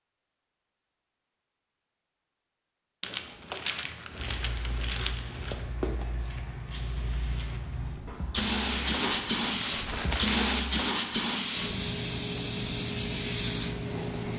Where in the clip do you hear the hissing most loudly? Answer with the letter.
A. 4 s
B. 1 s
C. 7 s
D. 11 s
D.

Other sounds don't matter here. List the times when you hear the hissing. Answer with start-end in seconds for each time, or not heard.
4.1-14.3.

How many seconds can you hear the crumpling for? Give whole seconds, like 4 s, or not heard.
5 s.